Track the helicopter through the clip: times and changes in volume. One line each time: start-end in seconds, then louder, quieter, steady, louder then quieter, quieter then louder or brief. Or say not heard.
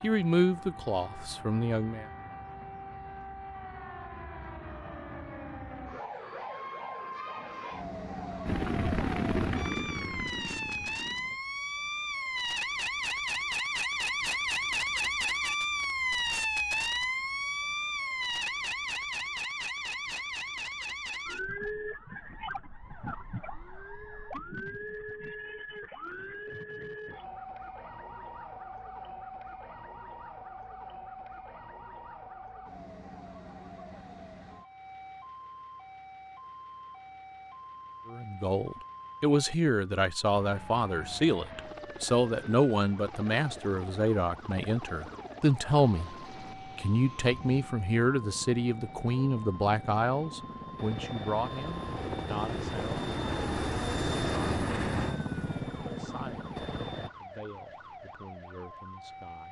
8.4-11.4 brief
40.4-57.1 louder.